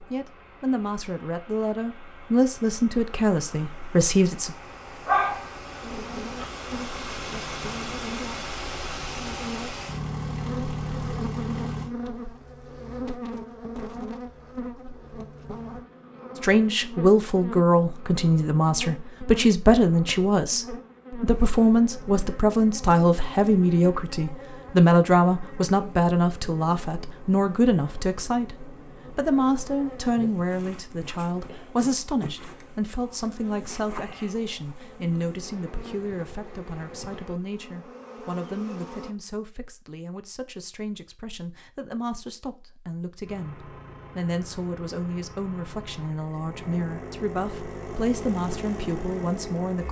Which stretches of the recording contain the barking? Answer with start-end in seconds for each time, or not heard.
5.0-6.8.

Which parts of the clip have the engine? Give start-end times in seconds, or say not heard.
0.0-11.9, 43.2-49.8.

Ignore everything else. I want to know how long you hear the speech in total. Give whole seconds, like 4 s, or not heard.
38 s.